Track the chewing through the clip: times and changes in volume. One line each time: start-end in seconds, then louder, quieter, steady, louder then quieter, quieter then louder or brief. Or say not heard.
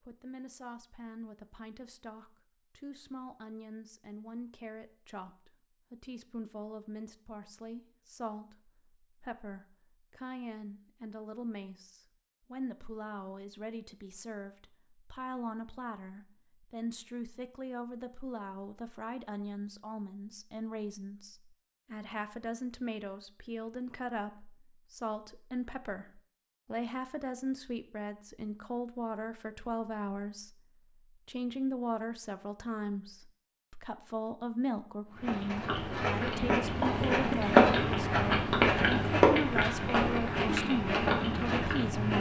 35.1-42.1 louder then quieter.